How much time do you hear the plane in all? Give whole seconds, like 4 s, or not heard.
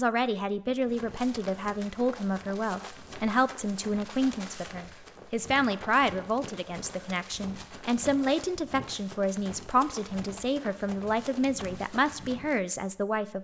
not heard.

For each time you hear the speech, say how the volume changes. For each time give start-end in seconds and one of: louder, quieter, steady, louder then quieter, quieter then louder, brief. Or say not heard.
0.0-13.3 steady.